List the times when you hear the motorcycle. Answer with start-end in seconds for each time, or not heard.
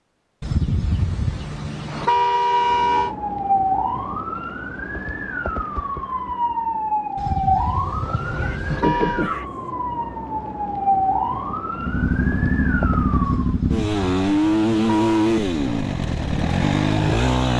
11.8-17.5.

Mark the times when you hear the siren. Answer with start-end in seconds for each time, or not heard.
2.5-13.6.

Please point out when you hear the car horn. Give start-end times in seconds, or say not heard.
0.4-3.1, 7.2-9.3, 13.2-15.3.